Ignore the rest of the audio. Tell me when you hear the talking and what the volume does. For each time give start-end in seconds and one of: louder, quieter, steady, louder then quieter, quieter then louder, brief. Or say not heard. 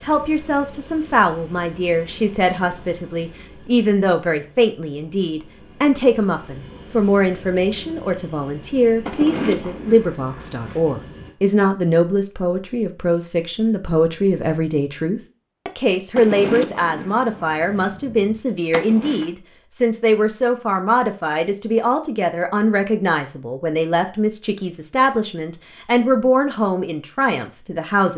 0.0-28.1 steady.